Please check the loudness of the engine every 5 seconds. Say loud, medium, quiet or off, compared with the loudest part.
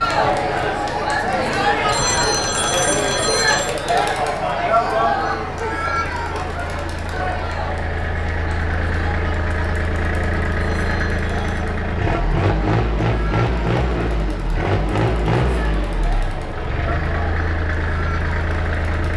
quiet, medium, loud, loud.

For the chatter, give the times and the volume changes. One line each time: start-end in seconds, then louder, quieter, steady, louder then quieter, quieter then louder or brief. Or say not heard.
0.0-19.1 quieter.